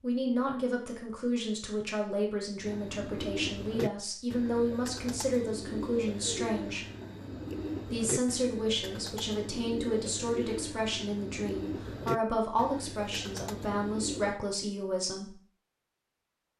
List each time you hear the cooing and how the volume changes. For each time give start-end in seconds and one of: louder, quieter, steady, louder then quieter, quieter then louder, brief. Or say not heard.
2.6-14.4 steady.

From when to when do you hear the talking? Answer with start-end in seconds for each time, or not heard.
0.0-6.8, 7.8-15.3.